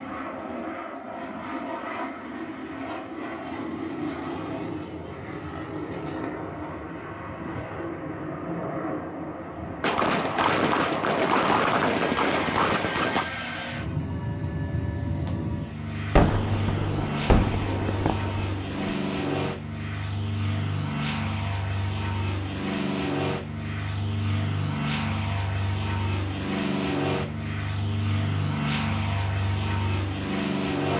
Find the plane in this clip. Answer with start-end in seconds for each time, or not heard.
0.0-30.9.